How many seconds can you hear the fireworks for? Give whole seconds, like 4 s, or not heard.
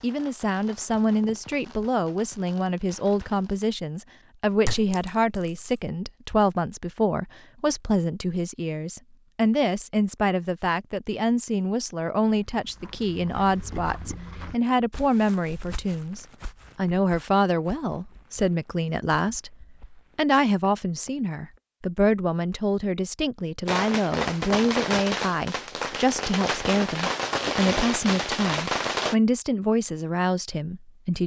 9 s.